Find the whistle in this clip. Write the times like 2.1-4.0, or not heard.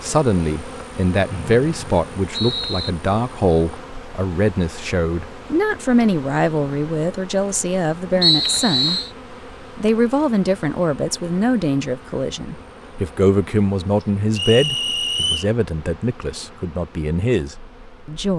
1.3-2.9, 8.2-9.1, 14.3-15.4.